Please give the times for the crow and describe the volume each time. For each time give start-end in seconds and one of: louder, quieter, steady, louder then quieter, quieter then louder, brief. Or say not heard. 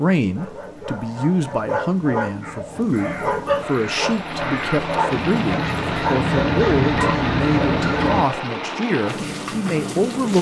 2.4-8.2 louder.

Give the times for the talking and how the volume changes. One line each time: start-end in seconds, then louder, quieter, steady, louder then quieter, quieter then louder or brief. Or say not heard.
0.0-10.3 steady.